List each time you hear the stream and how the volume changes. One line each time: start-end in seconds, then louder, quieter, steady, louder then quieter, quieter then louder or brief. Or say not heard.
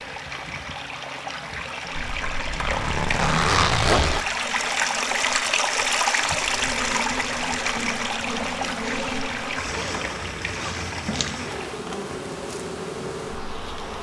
0.0-11.8 louder then quieter.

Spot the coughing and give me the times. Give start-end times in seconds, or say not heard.
not heard.